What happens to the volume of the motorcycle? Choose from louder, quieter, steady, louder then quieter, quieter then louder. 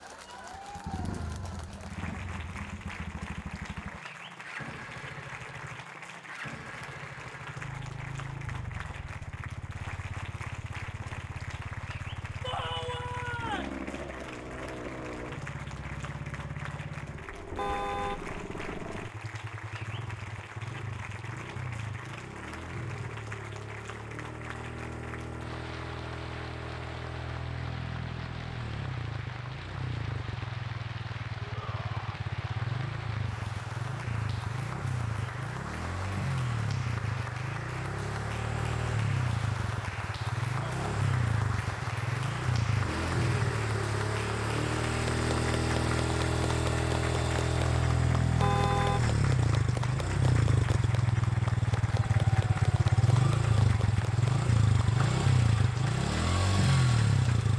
louder.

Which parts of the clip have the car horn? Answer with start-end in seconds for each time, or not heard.
17.6-18.2, 48.4-49.1.